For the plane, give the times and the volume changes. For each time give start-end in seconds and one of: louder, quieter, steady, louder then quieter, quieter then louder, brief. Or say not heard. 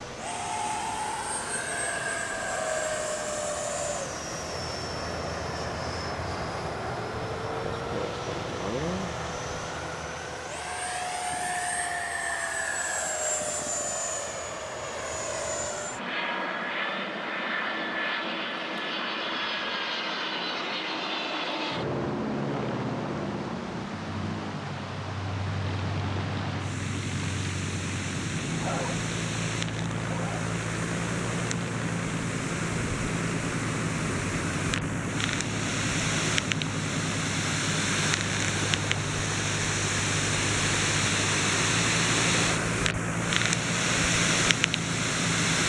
0.0-45.6 steady.